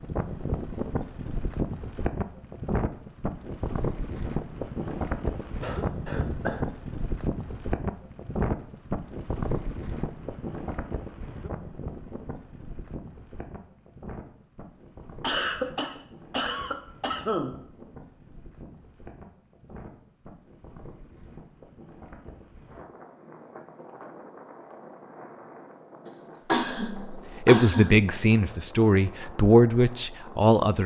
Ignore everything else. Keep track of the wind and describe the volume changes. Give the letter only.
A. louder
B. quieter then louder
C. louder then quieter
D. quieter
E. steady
D.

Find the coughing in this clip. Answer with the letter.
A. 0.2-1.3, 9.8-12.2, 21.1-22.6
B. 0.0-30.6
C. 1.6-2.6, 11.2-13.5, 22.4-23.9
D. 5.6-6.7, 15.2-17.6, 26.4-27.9
D.